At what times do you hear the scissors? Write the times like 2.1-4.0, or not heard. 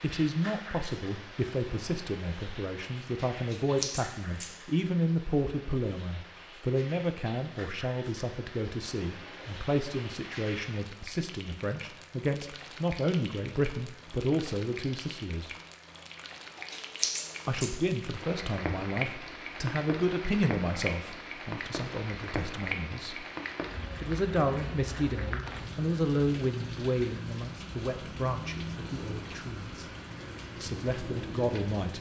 3.4-4.5, 16.6-17.8.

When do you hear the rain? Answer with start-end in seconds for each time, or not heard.
0.0-31.9.